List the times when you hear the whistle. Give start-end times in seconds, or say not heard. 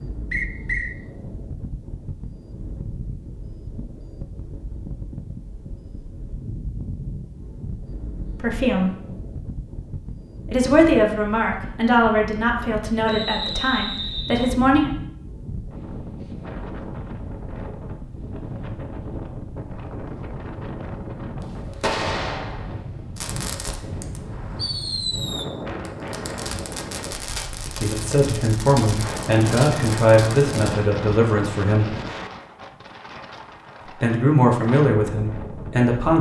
0.3-0.9, 13.1-14.6, 24.3-25.1.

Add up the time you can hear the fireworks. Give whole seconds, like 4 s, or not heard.
9 s.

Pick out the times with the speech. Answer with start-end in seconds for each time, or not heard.
8.4-8.9, 10.4-14.9, 27.8-31.9, 33.9-36.1.